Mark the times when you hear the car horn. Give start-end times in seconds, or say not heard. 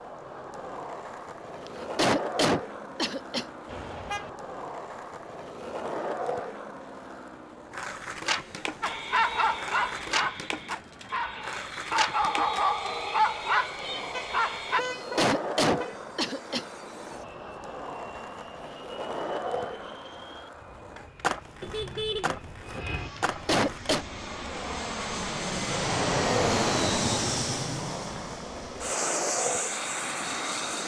3.6-4.3, 14.1-15.9, 21.6-22.9.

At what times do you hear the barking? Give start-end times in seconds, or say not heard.
8.8-14.8.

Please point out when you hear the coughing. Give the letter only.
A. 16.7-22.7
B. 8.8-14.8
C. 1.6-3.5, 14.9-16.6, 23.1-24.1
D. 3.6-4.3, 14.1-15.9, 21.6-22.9
C.